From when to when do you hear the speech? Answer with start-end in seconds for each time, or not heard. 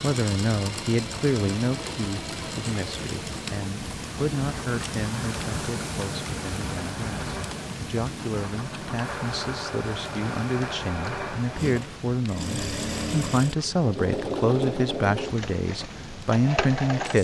0.0-17.1.